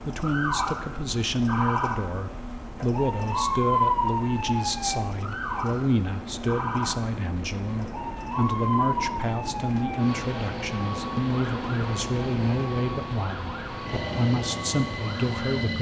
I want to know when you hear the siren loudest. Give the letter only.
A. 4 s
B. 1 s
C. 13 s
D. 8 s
A.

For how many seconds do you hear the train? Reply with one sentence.
The train can be heard for 16 seconds in total.